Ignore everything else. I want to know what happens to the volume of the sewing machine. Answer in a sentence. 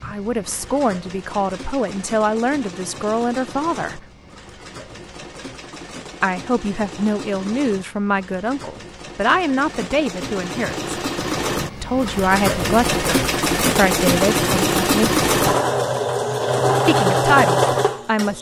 The loudness of the sewing machine goes up.